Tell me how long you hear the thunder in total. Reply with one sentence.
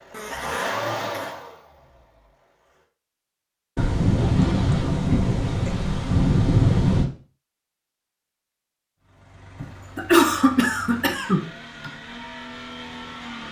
You can hear the thunder for 3 seconds altogether.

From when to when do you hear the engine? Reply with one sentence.
The engine can be heard from 0.0 to 2.9 s and from 9.0 to 13.4 s.